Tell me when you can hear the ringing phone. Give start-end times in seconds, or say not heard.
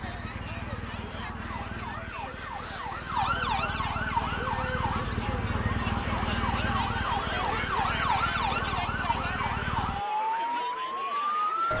not heard.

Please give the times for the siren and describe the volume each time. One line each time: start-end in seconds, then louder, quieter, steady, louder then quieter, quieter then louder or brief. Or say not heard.
0.0-11.7 louder.